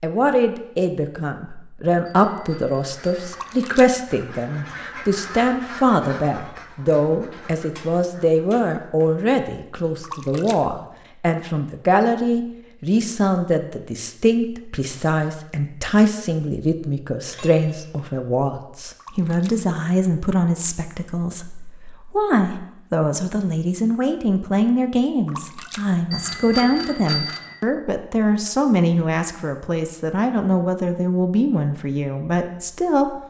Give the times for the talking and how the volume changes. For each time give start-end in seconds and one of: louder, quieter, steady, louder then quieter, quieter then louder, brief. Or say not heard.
0.0-33.1 steady.